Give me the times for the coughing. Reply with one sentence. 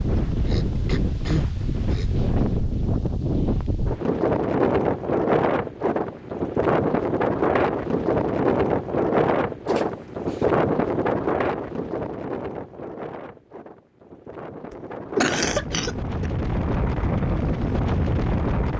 You can hear the coughing from 0.5 to 2.1 s, from 9.7 to 10.5 s and from 14.7 to 16.3 s.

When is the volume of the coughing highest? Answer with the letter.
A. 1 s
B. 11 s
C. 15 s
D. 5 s
C.